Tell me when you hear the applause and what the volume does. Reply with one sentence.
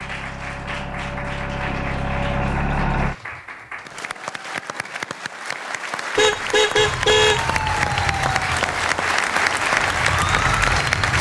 The applause can be heard from 0.0 to 11.1 s, getting louder.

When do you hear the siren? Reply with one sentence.
You can hear the siren from 6.8 to 11.1 s.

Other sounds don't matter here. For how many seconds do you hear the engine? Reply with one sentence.
The engine can be heard for 3 seconds in total.